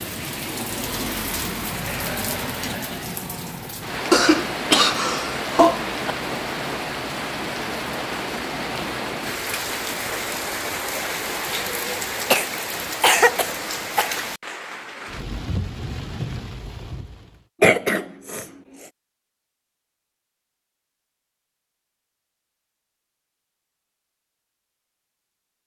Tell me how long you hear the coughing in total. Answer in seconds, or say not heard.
5 s.